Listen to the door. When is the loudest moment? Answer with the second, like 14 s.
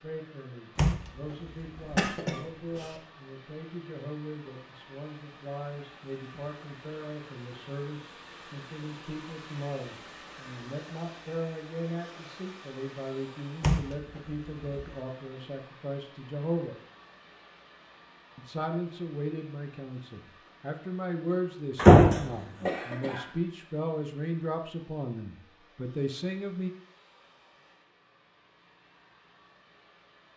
22 s.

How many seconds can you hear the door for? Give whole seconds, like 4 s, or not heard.
3 s.